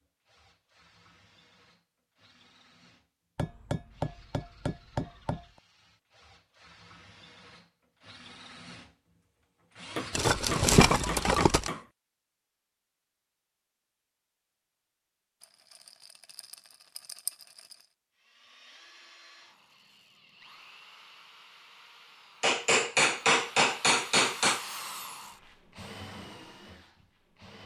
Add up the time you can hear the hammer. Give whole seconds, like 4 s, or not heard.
6 s.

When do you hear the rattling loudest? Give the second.
11 s.